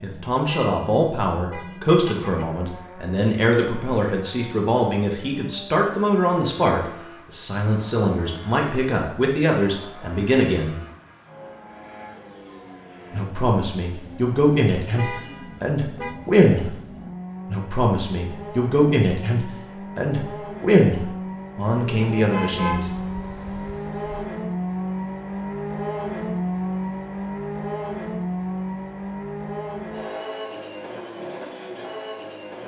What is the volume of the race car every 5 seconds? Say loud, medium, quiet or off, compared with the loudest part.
quiet, quiet, quiet, medium, loud, loud, medium.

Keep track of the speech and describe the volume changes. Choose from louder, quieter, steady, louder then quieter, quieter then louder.
steady.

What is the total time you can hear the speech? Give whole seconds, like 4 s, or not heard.
20 s.